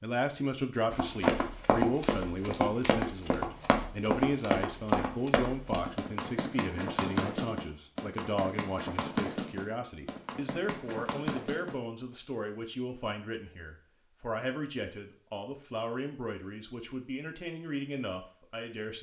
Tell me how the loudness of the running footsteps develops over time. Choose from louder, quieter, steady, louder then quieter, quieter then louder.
quieter.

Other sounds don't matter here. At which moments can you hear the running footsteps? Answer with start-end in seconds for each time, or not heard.
0.9-11.8.